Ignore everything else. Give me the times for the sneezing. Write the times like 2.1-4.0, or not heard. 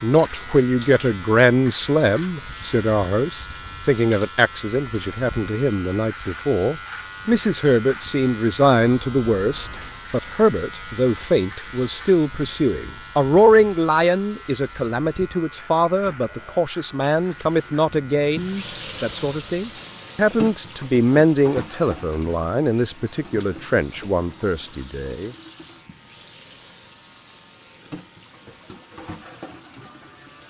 not heard.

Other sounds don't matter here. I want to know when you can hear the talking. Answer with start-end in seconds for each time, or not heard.
0.0-25.4.